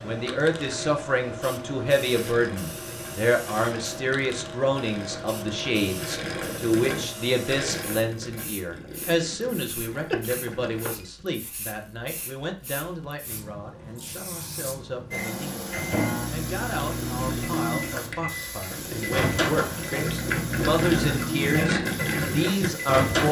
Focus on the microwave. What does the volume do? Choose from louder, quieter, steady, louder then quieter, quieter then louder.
steady.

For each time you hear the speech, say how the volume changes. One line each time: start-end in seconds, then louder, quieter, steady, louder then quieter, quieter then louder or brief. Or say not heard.
0.0-23.2 quieter then louder.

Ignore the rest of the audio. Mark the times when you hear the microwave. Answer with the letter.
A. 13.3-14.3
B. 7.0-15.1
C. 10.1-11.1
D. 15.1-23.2
D.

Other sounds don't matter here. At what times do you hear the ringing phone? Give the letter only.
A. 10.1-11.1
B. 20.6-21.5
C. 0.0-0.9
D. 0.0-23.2
A.